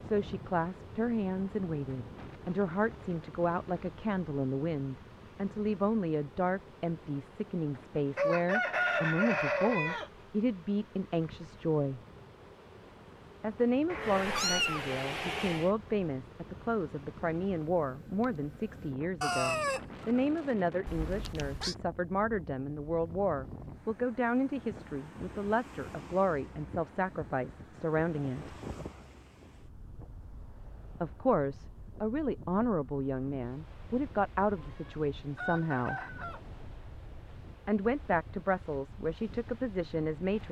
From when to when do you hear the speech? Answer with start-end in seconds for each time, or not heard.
0.0-12.0, 13.4-28.6, 31.0-36.0, 37.6-40.4.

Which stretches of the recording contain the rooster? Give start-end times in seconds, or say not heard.
8.2-10.1, 19.2-20.2, 34.6-36.4.